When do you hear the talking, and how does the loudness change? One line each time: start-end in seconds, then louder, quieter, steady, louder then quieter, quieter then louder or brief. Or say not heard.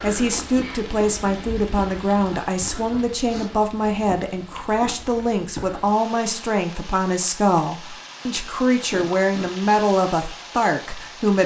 0.0-11.4 steady.